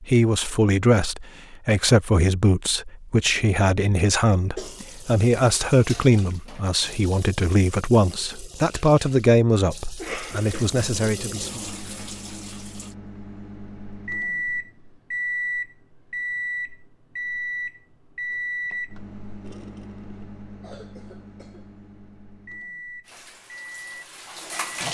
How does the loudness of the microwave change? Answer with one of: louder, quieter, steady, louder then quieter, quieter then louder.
louder then quieter.